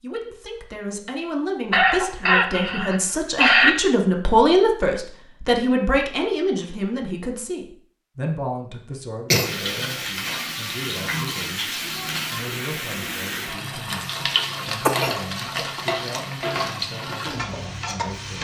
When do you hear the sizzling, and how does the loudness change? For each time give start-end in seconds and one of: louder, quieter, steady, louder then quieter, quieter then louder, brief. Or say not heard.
9.4-18.3 steady.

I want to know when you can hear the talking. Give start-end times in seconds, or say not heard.
0.0-18.3.